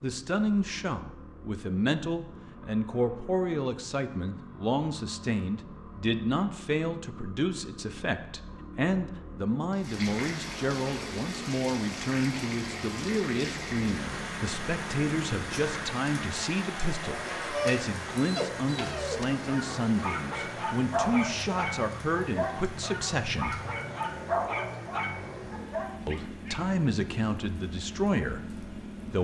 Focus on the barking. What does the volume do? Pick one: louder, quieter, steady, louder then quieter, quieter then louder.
steady.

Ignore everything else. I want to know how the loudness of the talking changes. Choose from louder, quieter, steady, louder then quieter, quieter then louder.
steady.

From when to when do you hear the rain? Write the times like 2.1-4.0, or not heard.
9.7-29.1.